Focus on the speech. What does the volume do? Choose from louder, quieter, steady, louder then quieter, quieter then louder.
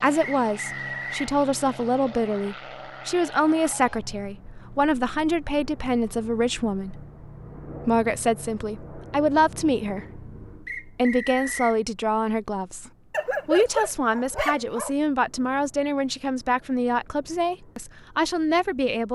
steady.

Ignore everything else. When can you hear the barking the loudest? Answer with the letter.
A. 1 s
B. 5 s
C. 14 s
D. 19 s
C.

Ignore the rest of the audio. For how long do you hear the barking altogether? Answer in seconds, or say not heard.
2 s.